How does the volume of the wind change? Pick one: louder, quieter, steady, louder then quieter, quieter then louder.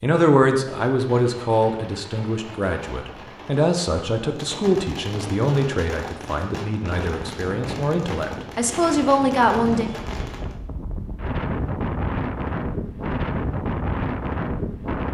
louder.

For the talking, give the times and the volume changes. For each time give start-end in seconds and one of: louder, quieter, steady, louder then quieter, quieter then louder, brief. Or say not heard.
0.0-9.8 quieter then louder.